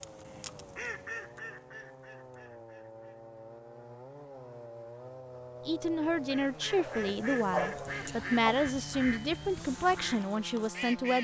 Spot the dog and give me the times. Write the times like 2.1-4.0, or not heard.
6.8-8.6.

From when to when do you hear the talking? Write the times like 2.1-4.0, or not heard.
5.7-11.1.